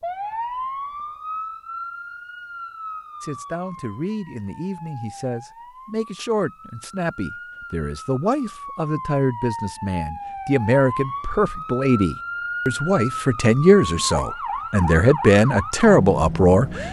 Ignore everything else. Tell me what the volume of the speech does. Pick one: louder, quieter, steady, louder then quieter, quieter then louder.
louder.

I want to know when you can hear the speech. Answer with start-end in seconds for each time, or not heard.
3.2-16.8.